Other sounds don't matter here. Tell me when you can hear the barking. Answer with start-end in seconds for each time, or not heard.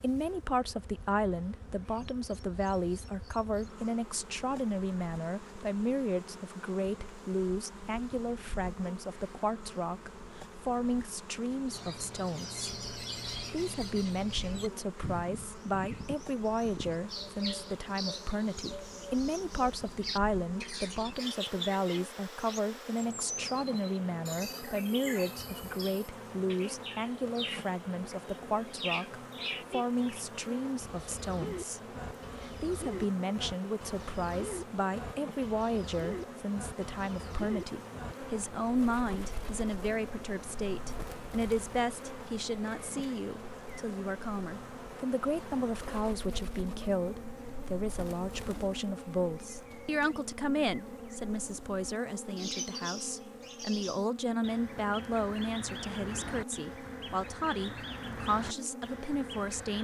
not heard.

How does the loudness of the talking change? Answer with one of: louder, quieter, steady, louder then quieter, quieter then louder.
steady.